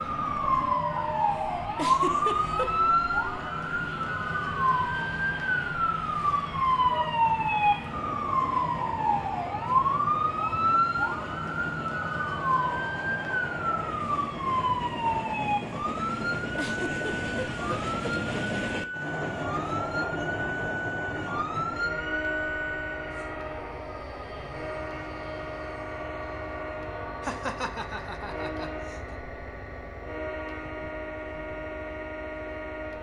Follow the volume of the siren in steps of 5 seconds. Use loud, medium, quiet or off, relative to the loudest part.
loud, loud, loud, medium, medium, off, off.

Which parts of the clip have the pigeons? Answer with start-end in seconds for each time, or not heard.
not heard.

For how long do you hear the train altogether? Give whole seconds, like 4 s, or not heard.
33 s.